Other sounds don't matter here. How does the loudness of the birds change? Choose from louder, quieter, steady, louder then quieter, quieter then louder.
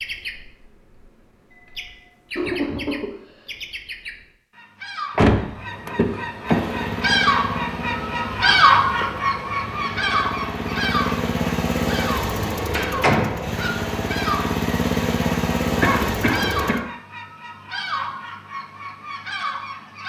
louder then quieter.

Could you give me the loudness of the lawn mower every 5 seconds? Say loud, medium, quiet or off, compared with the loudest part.
off, medium, loud, loud.